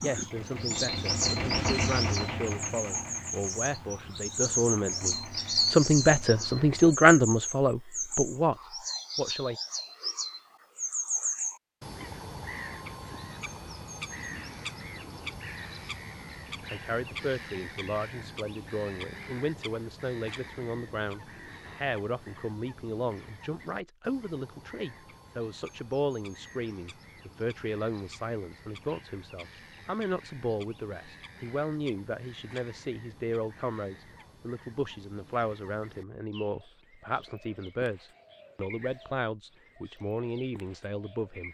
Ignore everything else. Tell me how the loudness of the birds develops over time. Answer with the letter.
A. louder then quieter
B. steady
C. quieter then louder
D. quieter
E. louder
D.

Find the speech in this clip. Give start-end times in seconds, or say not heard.
0.0-9.6, 16.7-41.4.